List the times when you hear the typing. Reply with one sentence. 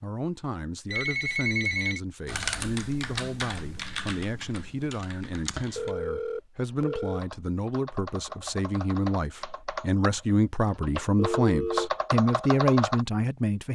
The typing can be heard from 2.2 to 13.1 s.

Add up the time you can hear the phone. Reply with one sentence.
You can hear the phone for 3 seconds altogether.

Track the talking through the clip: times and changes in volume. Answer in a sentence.
You can hear the talking from 0.0 to 13.7 s, getting louder.